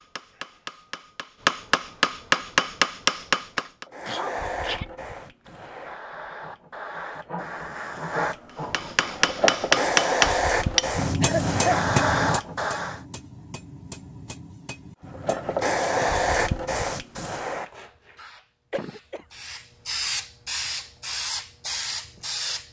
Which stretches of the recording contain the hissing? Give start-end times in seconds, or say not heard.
3.9-13.0, 15.1-22.6.